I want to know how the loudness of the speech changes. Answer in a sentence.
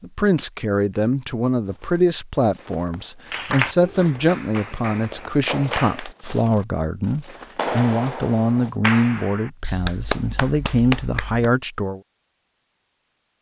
The volume of the speech stays about the same.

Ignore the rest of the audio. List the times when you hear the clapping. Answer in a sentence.
You can hear the clapping from 3.3 to 6.1 s and from 7.5 to 11.5 s.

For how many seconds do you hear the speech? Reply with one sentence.
The speech can be heard for 12 seconds in total.